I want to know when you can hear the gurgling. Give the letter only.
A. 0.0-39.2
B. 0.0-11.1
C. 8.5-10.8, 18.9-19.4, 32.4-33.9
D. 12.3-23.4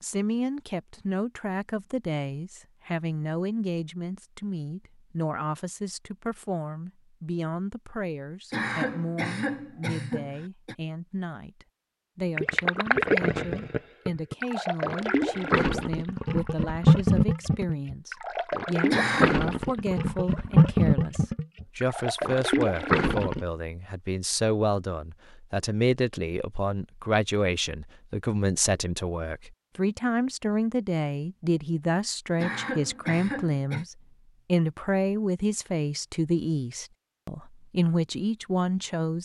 D.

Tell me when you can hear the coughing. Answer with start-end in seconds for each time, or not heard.
8.5-10.8, 18.9-19.4, 32.4-33.9.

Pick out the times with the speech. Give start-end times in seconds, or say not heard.
0.0-39.2.